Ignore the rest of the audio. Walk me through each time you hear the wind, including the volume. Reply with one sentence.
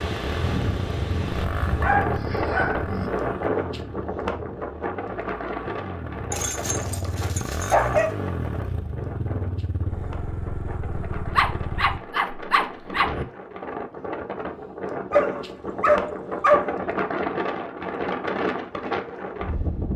You can hear the wind from 0.0 to 19.9 s, getting quieter then louder.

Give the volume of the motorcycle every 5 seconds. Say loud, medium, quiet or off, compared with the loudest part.
loud, loud, loud, off.